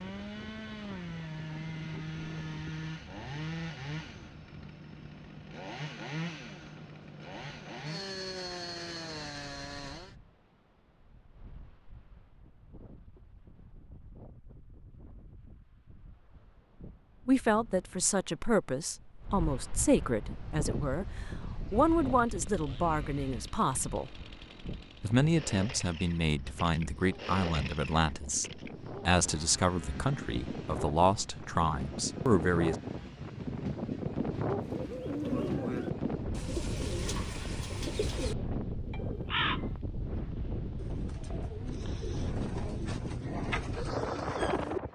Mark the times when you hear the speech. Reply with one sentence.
You can hear the speech from 17.2 to 21.1 s, from 21.7 to 24.1 s and from 25.0 to 32.8 s.